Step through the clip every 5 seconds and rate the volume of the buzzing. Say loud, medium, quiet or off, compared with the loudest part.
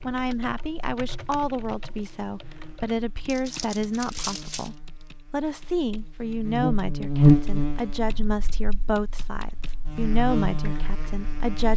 quiet, loud, medium.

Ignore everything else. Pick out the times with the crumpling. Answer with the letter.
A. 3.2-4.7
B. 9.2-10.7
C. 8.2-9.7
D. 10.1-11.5
A.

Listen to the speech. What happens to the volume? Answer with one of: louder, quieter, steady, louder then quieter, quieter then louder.
steady.